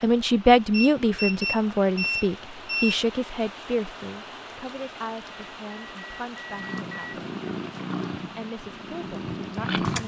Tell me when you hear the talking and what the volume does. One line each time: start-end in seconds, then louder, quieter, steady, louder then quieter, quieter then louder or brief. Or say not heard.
0.0-7.2 quieter
8.3-10.0 brief.